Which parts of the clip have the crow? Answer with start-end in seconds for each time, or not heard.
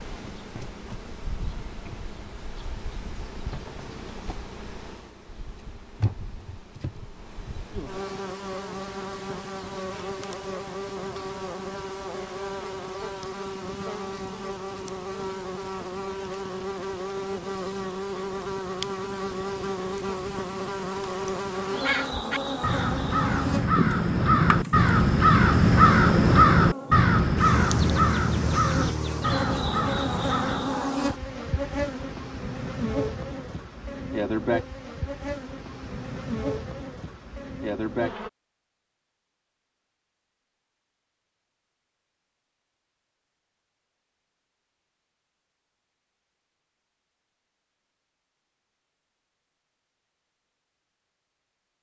21.7-30.9.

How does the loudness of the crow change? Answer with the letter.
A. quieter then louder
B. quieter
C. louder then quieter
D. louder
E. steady
C.